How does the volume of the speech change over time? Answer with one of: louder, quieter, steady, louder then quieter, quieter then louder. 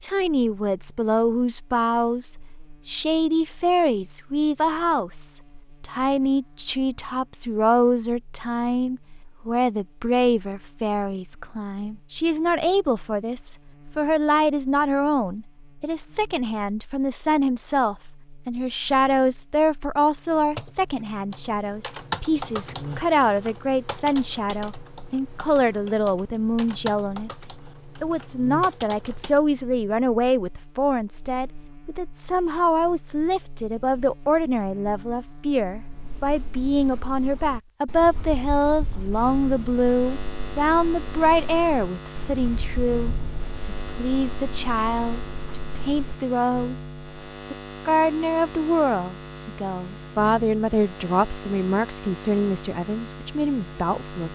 steady.